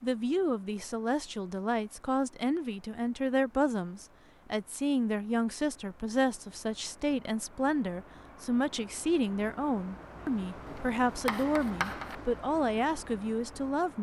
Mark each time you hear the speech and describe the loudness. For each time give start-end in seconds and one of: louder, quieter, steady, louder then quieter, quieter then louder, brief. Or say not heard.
0.0-13.9 steady.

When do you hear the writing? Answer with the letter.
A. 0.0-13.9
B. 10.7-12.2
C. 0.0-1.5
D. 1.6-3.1
B.